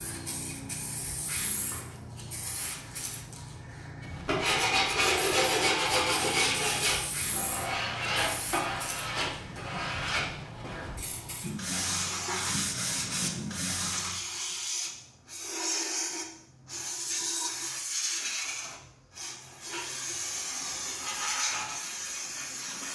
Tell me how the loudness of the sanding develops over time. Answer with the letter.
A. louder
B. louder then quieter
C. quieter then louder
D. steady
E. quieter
E.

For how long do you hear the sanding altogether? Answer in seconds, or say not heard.
10 s.